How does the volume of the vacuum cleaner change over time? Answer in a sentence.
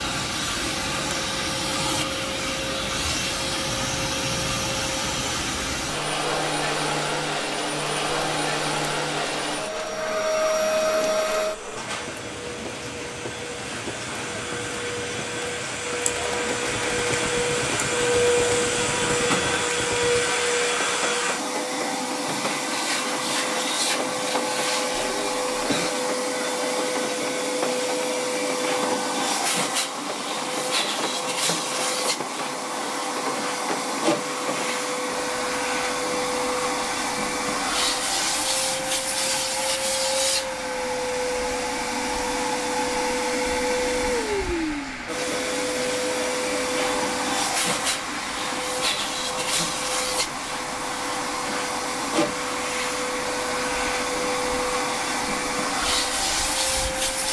The volume of the vacuum cleaner stays about the same.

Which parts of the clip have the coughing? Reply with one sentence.
You can hear the coughing from 24.9 to 25.9 s.